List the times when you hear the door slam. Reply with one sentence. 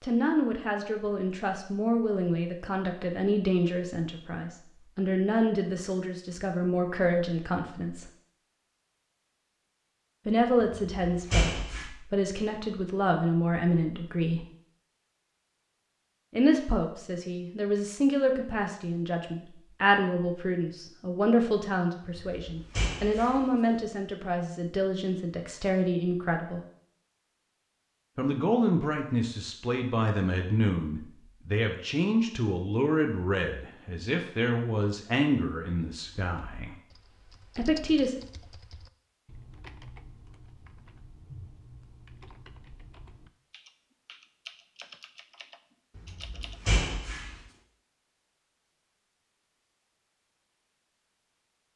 You can hear the door slam from 10.6 to 11.9 s, from 22.1 to 23.8 s and from 46.0 to 47.4 s.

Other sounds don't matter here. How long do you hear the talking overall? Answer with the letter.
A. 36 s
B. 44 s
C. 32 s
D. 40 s
C.